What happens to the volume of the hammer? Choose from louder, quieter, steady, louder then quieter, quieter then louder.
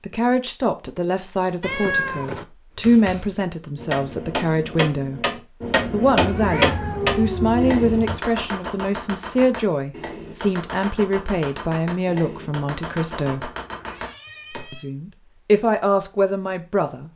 louder then quieter.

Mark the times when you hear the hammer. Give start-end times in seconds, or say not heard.
2.8-14.7.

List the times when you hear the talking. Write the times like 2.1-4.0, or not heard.
0.1-13.5, 14.7-17.1.